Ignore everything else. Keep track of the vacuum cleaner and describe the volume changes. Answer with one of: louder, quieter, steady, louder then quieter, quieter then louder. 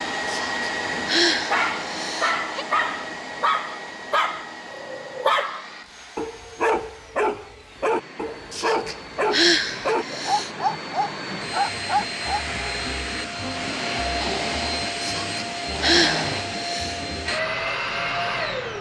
quieter then louder.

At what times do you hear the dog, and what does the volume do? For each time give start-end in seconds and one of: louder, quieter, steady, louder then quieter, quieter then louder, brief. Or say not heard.
1.5-12.4 steady.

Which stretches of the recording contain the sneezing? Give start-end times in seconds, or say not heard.
0.2-2.6, 8.5-10.5, 15.0-17.0.